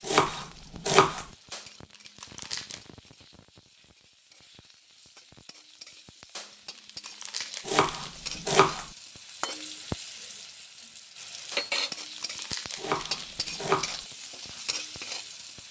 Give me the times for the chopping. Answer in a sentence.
You can hear the chopping from 0.1 to 1.2 s, from 7.7 to 8.8 s and from 12.8 to 14.0 s.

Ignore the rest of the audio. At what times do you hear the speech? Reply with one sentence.
You can't hear the speech here.